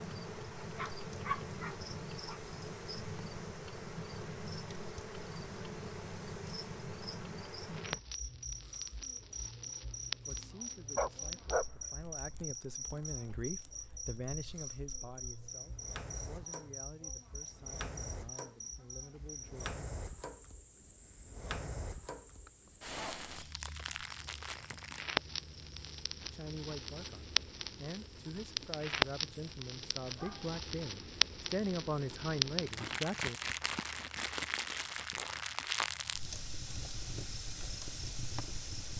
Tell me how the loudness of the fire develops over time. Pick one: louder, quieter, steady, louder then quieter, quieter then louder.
louder.